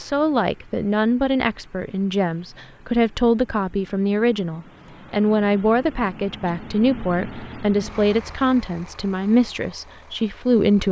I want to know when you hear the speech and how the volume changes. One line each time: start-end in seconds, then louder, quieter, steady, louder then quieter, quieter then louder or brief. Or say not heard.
0.0-10.8 steady.